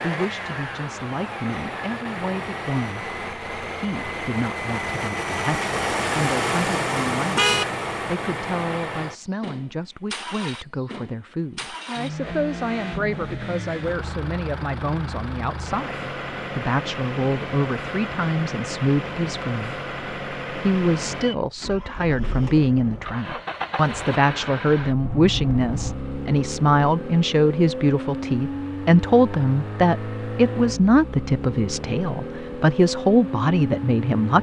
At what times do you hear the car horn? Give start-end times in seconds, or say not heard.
7.2-7.7, 25.0-26.0.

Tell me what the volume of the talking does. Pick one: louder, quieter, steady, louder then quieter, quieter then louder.
louder.